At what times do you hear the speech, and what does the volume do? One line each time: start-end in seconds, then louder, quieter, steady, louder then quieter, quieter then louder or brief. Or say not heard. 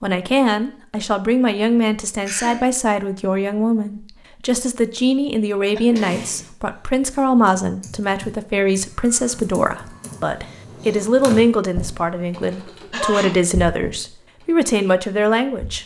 0.0-15.8 steady.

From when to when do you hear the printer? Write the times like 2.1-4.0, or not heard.
not heard.